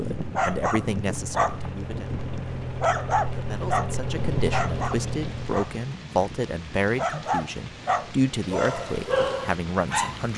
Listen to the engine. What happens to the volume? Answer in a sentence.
The loudness of the engine goes up.